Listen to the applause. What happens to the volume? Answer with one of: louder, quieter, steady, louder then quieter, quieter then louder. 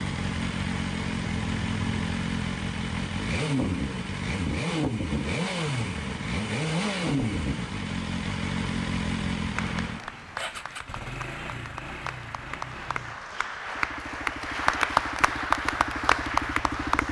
louder.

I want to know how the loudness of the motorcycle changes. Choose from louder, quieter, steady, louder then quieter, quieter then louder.
quieter.